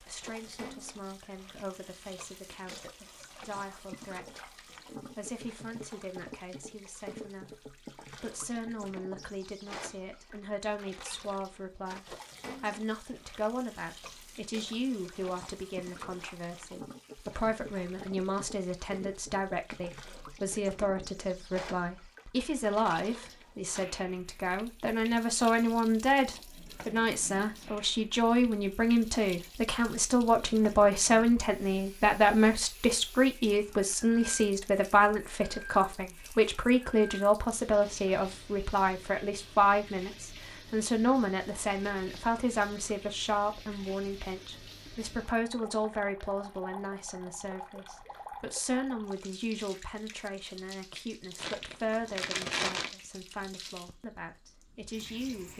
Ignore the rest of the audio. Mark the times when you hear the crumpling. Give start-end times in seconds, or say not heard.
51.4-53.0.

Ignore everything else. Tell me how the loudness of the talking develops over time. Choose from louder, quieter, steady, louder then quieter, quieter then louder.
louder then quieter.